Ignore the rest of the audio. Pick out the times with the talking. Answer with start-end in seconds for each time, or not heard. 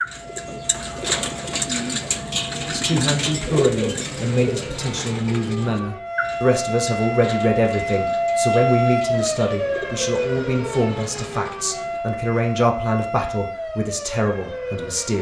2.6-15.1.